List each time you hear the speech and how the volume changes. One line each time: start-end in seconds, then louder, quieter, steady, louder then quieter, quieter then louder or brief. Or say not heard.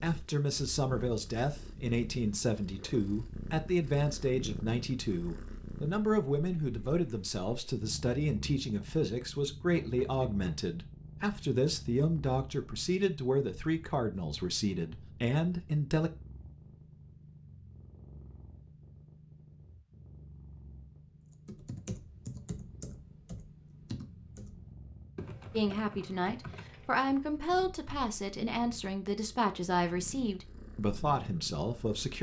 0.0-16.1 steady
25.5-32.1 steady.